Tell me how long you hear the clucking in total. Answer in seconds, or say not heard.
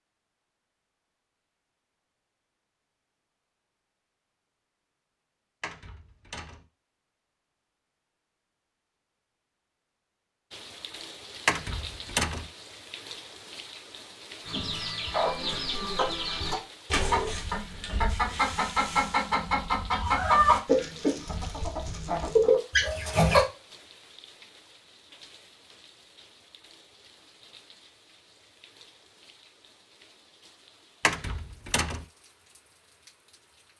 9 s.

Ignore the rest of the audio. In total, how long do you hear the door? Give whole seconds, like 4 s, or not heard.
3 s.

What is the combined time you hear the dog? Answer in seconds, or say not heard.
not heard.